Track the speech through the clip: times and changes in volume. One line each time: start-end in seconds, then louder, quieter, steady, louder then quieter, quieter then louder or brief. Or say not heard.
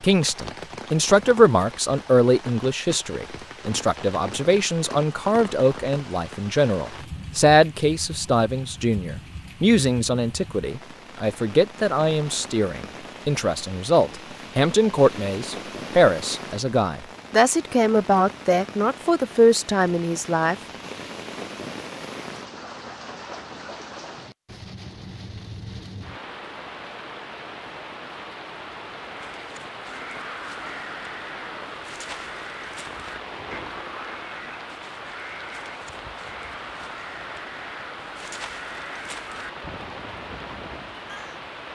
0.0-20.6 steady.